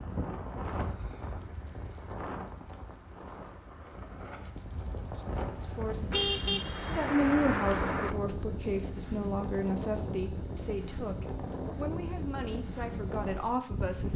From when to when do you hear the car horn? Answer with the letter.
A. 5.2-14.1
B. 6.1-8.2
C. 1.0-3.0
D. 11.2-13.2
B.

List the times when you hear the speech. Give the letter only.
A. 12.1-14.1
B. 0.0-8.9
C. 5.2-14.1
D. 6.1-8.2
C.